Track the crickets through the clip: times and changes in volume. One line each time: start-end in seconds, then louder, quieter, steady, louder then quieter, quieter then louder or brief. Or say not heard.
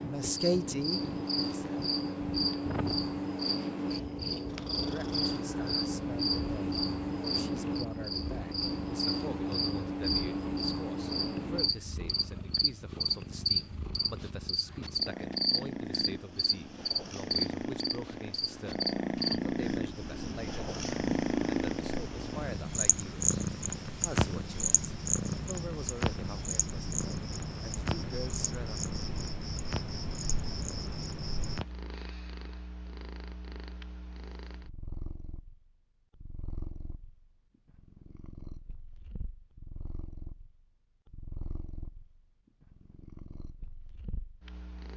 0.0-31.6 quieter.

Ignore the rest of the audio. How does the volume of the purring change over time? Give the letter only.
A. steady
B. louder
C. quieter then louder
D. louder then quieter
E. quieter
D.